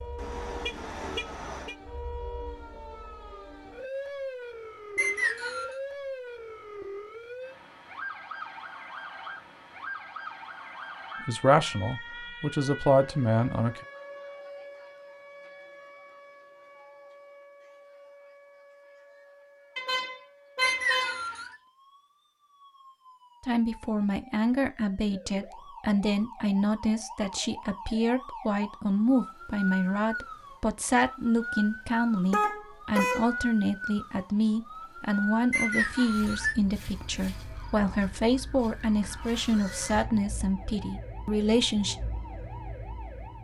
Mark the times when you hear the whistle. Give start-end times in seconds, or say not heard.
5.0-5.8, 20.6-21.6, 35.5-36.5.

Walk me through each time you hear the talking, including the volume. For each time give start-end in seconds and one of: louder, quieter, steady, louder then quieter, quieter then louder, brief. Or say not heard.
11.2-13.8 brief
23.4-42.0 steady.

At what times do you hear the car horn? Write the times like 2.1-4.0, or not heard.
0.1-1.8, 19.8-21.3, 32.3-33.4.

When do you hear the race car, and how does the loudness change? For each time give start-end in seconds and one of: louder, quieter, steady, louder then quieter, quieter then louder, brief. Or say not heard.
not heard.